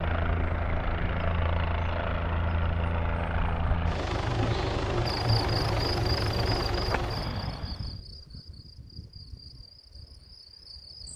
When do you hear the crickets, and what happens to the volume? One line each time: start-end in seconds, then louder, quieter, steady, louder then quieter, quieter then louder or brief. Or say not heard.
5.0-11.1 quieter.